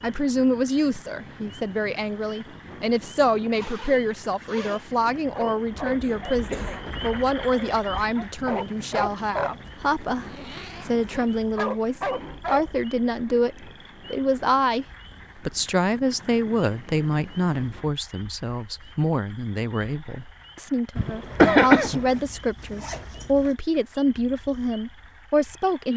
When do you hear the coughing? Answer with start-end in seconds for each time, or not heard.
6.0-7.0, 20.9-22.0.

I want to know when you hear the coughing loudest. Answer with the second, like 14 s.
22 s.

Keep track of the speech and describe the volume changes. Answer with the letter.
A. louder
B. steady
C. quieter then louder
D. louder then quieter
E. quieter
B.